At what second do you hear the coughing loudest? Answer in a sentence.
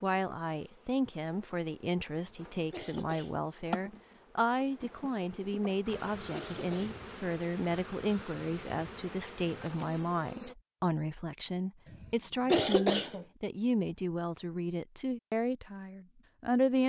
The volume of the coughing peaks at 13 seconds.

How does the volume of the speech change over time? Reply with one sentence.
The volume of the speech stays about the same.